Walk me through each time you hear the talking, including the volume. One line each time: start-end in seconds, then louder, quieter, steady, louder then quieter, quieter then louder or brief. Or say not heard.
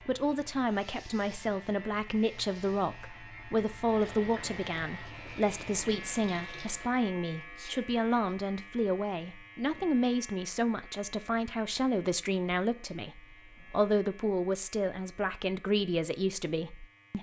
0.1-17.1 steady.